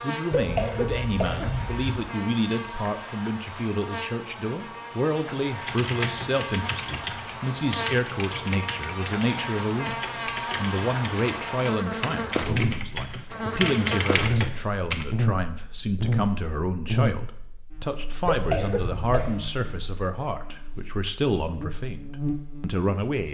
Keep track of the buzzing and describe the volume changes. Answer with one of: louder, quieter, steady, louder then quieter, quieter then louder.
louder then quieter.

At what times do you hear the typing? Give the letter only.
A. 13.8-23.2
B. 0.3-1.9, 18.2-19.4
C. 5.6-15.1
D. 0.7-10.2
C.